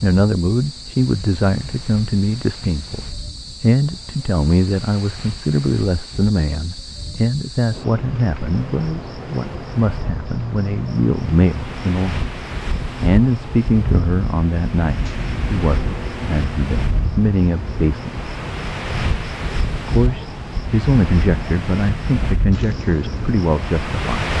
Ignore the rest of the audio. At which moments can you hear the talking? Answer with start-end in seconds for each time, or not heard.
0.0-12.2, 13.0-18.1, 19.8-24.3.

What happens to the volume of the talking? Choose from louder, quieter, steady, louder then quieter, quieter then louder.
steady.